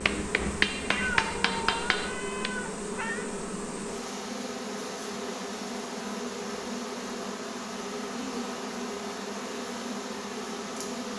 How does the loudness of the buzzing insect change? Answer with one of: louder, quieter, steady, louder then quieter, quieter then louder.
steady.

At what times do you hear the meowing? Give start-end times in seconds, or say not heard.
0.9-3.3.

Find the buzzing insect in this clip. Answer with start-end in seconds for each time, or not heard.
0.0-11.1.